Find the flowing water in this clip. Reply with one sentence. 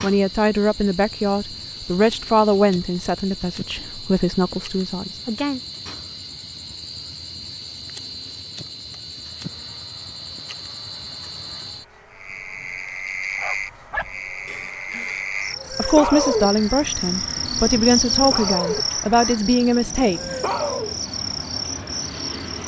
The flowing water can't be heard in this clip.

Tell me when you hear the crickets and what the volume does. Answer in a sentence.
You can hear the crickets from 0.0 to 22.6 s, getting louder.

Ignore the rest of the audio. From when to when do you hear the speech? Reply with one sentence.
You can hear the speech from 0.0 to 5.6 s and from 15.7 to 20.3 s.